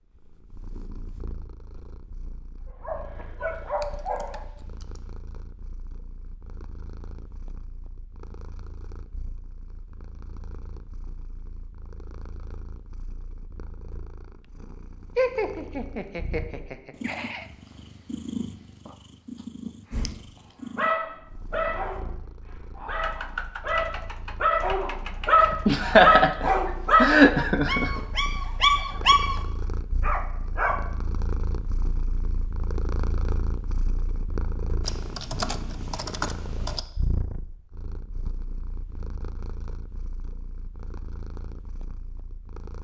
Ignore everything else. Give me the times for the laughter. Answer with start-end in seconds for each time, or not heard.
15.2-17.4, 25.6-27.9.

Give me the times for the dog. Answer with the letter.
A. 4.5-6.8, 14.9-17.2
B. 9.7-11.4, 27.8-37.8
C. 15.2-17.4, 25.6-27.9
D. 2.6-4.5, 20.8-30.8
D.